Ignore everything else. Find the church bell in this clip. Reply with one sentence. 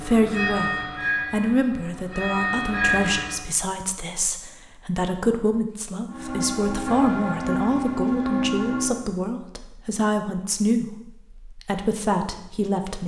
You can hear the church bell from 0.0 to 3.5 s and from 6.0 to 9.1 s.